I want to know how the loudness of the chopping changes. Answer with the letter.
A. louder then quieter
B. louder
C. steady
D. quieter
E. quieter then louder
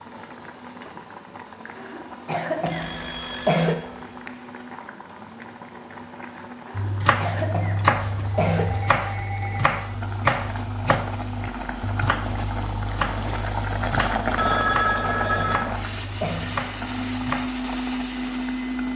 D.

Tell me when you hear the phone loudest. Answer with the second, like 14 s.
15 s.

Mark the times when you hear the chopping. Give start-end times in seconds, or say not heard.
6.8-17.5.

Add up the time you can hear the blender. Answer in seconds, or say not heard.
19 s.